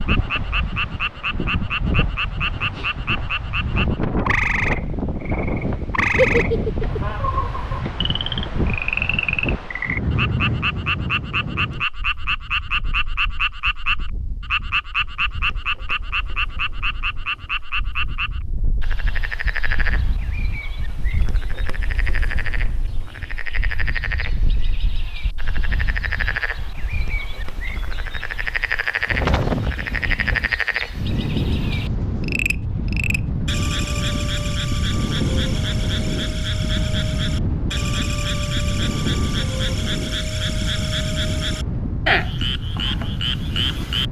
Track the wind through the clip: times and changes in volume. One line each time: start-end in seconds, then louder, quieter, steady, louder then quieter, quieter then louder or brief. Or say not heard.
0.0-44.0 quieter then louder.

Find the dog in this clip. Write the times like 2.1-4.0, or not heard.
not heard.